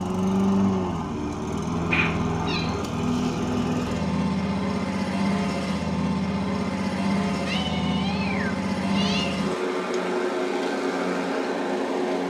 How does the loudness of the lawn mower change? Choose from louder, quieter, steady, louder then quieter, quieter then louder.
steady.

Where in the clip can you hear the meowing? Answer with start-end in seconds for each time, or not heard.
1.9-2.9, 7.5-9.4.